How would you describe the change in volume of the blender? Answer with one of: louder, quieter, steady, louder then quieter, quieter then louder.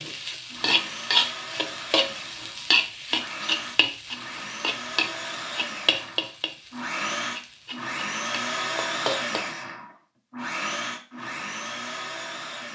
louder.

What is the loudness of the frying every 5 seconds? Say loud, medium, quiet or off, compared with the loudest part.
loud, medium, off.